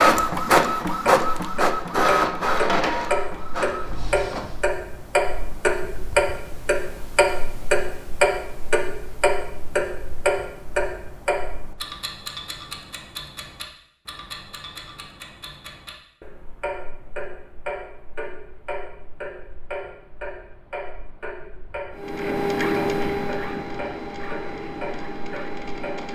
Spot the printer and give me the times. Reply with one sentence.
The printer can be heard from 0.0 to 4.7 s and from 21.9 to 26.1 s.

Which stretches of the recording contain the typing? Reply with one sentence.
You can't hear the typing here.